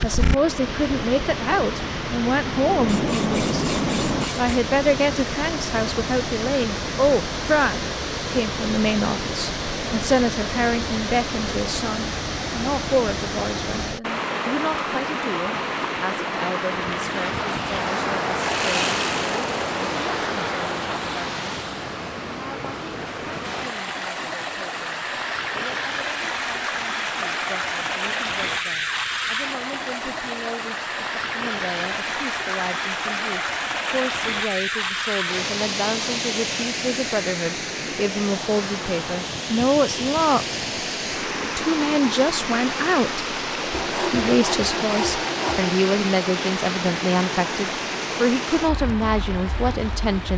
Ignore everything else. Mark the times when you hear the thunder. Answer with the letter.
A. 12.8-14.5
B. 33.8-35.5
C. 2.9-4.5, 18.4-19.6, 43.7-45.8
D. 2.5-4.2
D.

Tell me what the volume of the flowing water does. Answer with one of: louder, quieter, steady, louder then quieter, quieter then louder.
steady.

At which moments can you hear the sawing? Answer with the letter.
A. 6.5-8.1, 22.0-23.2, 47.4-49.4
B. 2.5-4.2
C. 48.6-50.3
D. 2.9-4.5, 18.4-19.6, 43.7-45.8
D.